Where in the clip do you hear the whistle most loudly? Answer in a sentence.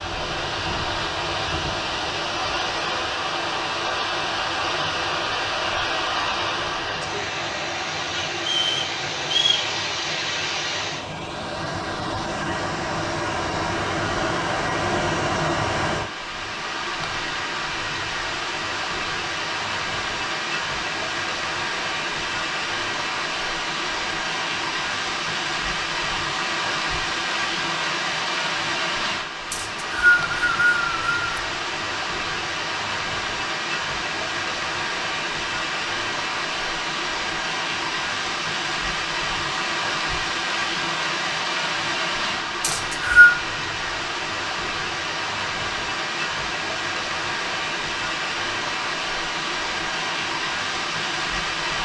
The volume of the whistle peaks at 43 seconds.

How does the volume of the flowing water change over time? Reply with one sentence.
The volume of the flowing water stays about the same.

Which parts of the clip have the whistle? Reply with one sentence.
You can hear the whistle from 8.4 to 9.7 s, from 29.5 to 31.2 s and from 42.6 to 43.4 s.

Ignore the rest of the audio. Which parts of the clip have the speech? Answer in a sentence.
You can't hear the speech here.